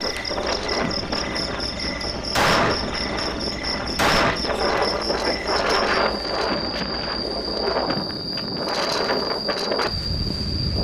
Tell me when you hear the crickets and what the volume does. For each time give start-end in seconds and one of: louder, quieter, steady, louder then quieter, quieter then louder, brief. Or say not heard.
0.0-10.7 steady.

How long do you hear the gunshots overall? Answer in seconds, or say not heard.
2 s.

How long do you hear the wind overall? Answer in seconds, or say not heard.
11 s.